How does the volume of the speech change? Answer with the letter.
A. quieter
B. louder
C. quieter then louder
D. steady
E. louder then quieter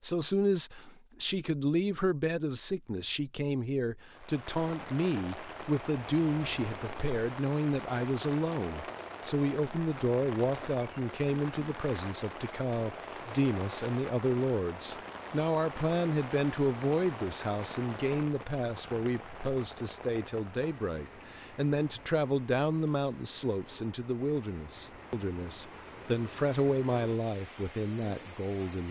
D.